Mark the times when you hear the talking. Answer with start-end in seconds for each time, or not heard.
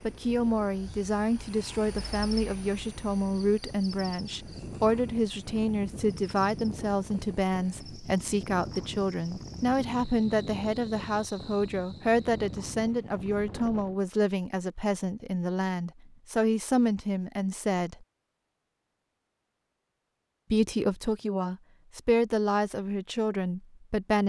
0.0-18.1, 20.5-24.2.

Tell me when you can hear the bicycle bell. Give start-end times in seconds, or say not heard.
not heard.